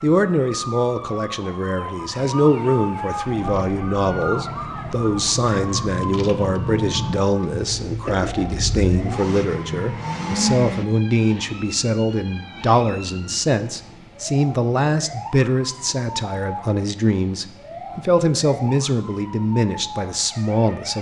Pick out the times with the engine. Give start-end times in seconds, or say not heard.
3.4-10.8.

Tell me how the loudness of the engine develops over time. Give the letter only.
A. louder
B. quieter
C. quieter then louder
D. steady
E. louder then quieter
A.